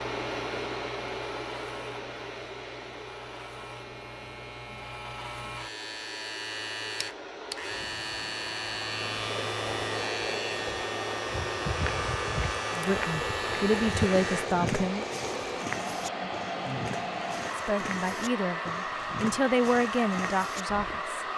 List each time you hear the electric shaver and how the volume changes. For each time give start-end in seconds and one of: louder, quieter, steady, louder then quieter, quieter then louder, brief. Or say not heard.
0.0-14.5 louder.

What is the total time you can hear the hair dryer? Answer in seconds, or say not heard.
21 s.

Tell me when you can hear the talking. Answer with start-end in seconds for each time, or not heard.
12.8-15.1, 17.6-21.2.